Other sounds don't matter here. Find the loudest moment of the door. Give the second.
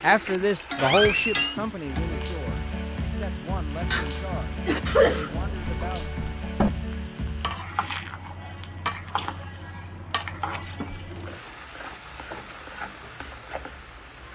1 s.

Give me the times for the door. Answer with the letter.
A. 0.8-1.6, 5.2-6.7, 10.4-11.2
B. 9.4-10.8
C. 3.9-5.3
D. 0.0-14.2
A.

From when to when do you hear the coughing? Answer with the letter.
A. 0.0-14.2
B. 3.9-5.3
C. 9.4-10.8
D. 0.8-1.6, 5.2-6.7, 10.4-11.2
B.